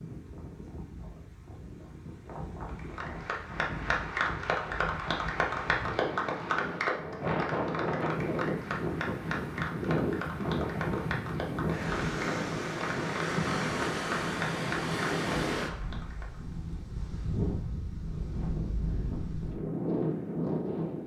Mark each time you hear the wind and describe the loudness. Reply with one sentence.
You can hear the wind from 0.0 to 21.0 s, getting louder.